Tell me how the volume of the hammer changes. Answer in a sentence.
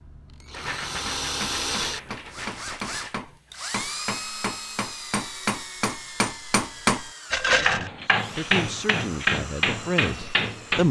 The loudness of the hammer goes up.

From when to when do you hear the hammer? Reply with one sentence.
The hammer can be heard from 1.1 to 10.8 s.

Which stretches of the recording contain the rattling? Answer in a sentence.
You can hear the rattling from 0.5 to 3.2 s and from 7.3 to 7.9 s.